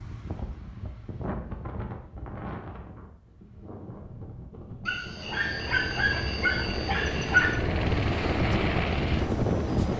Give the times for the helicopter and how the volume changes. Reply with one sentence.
The helicopter can be heard from 5.0 to 9.9 s, getting louder.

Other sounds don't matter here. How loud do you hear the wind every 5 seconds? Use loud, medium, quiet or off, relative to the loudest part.
medium, loud.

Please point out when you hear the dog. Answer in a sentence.
You can hear the dog from 4.8 to 7.6 s.